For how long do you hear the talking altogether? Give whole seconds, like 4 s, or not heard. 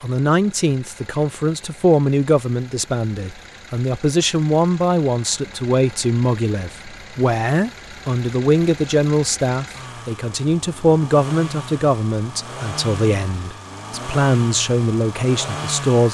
16 s.